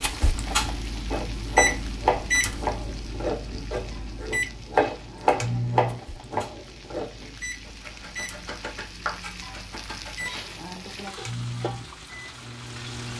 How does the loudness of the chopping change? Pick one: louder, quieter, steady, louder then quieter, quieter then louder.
quieter.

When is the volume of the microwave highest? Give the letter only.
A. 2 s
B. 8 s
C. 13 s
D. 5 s
A.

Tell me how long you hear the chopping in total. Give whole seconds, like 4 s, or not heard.
9 s.